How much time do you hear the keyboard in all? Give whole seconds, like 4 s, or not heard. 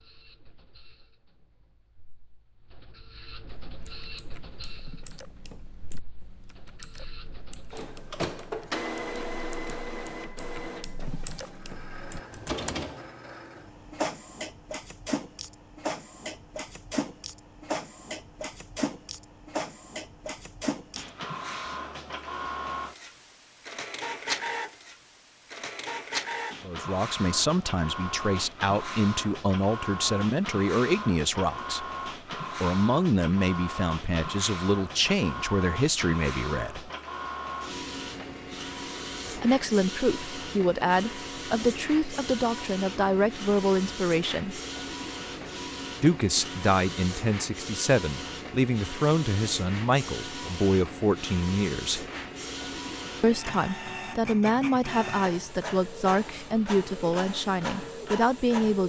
9 s.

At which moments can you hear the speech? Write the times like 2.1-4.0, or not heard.
26.6-31.9, 32.6-36.9, 39.4-44.6, 46.0-52.0, 53.2-58.8.